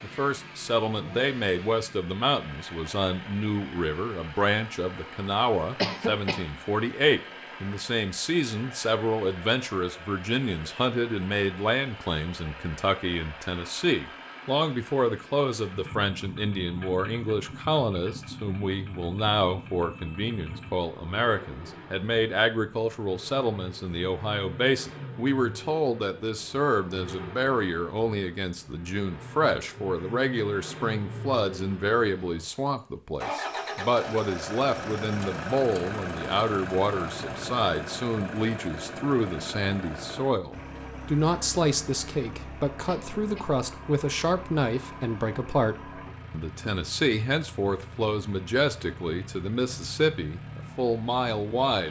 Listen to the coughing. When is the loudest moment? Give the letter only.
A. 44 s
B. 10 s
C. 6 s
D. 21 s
C.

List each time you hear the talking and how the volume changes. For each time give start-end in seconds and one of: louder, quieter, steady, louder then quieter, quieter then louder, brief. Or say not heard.
0.0-51.8 steady.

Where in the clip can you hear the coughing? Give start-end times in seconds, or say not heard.
5.8-6.5, 42.9-43.5.